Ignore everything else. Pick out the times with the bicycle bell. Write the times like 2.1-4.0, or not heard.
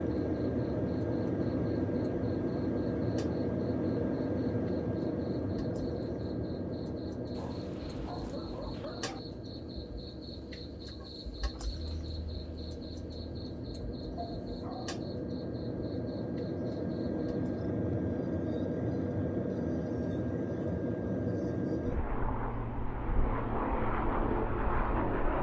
not heard.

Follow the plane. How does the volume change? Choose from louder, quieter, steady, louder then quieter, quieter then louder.
quieter then louder.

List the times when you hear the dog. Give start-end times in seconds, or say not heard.
7.3-9.2, 14.2-15.0.